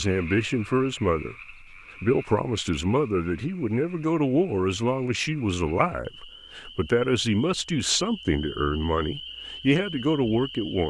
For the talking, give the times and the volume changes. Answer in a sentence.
The talking can be heard from 0.0 to 10.8 s, at a steady volume.